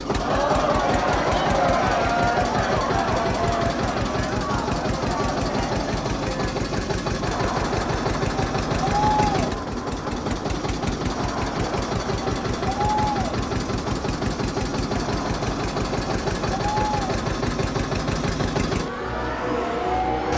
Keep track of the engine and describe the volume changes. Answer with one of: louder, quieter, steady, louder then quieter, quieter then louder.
steady.